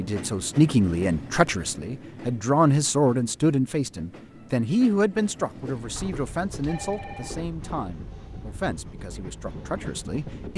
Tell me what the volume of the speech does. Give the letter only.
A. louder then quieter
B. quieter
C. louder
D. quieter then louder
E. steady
B.